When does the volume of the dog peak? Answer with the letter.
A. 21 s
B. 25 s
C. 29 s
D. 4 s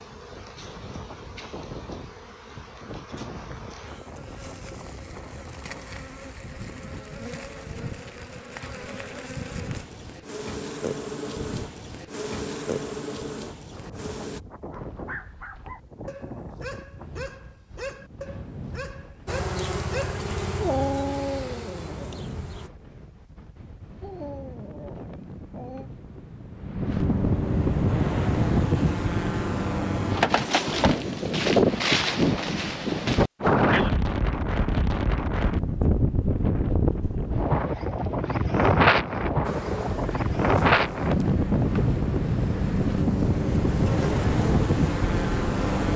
A.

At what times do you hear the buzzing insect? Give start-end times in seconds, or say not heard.
0.0-14.4, 19.2-22.7, 39.4-45.9.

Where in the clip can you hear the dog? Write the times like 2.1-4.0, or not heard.
14.7-23.1, 24.0-25.9.